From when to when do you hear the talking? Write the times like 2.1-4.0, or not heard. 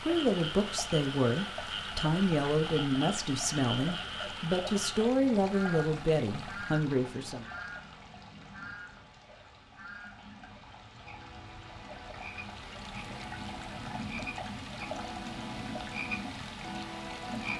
0.0-7.5.